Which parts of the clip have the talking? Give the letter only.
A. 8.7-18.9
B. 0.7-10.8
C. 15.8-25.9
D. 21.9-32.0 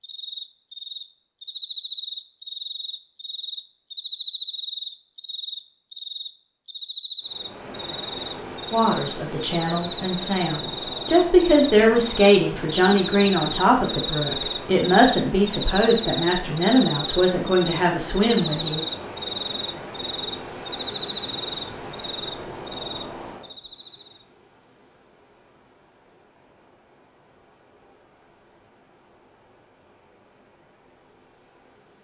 A.